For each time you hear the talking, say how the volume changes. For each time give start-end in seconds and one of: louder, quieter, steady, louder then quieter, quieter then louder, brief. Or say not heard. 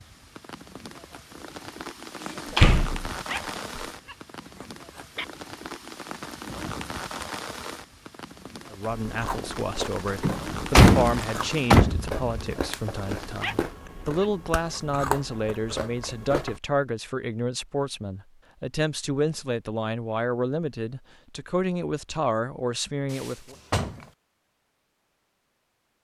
8.7-23.6 steady.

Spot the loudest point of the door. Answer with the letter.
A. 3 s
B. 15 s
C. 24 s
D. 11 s
D.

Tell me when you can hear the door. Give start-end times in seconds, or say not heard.
2.5-3.8, 10.2-12.3, 23.1-24.1.